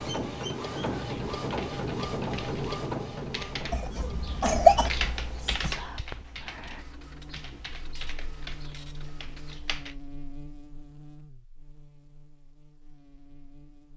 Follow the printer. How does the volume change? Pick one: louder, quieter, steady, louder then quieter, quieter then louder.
quieter.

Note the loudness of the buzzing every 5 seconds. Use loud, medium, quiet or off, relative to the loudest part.
off, loud, loud.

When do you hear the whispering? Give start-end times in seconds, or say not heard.
5.5-6.8.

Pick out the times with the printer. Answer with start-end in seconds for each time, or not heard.
0.0-9.6.